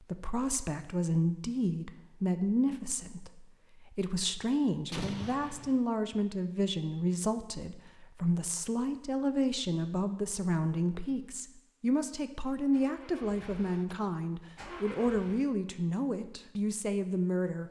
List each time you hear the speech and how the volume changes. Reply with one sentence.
The speech can be heard from 0.1 to 17.6 s, at a steady volume.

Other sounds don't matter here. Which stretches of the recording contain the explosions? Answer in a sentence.
The explosions can be heard from 4.9 to 5.8 s.